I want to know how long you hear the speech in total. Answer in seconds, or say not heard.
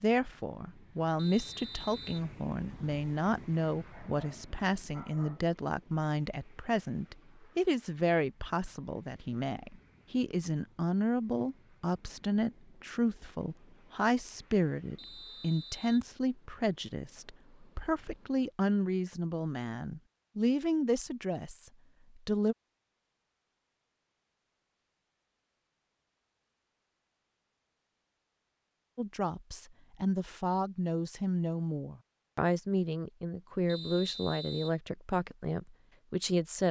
30 s.